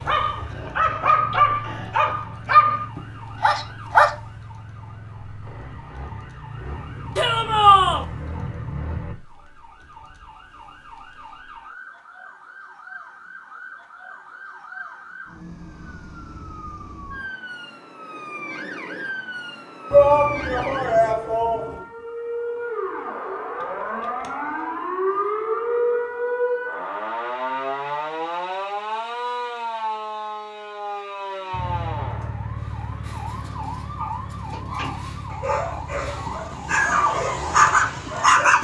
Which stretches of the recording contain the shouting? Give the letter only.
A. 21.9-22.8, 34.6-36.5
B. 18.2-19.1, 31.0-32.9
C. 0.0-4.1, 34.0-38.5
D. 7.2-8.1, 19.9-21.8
D.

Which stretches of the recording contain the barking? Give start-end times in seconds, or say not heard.
0.0-4.1, 34.0-38.5.